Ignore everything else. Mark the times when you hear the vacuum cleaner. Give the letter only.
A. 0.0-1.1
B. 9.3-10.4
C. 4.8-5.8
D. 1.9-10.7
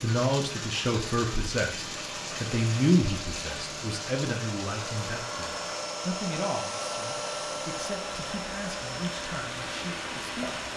D.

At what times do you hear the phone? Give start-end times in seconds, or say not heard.
4.8-5.8.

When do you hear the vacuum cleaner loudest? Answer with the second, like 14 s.
7 s.